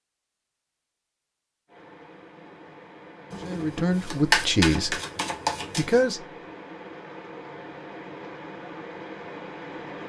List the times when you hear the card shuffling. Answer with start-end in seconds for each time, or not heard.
3.3-6.0.